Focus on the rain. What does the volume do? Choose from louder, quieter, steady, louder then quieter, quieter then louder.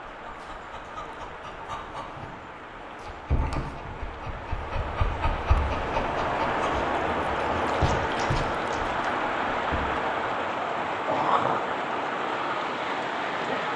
louder.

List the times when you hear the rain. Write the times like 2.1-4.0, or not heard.
0.0-13.7.